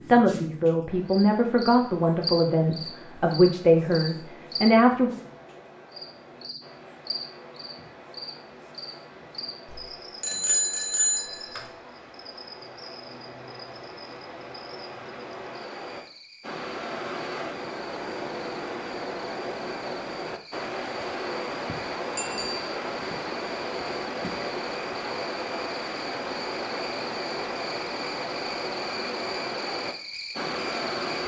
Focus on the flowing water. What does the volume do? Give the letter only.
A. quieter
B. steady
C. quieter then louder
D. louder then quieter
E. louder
E.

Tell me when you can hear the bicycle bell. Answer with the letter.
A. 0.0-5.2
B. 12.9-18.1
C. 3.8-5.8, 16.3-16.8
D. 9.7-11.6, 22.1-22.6
D.